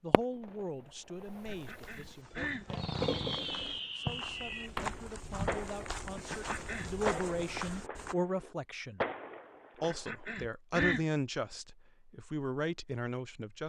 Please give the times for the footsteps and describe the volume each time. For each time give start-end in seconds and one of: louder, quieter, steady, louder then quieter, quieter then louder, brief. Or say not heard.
1.4-8.2 louder.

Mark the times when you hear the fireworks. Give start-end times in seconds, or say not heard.
0.1-0.5, 1.2-1.7, 2.7-10.3.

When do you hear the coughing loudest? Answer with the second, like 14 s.
11 s.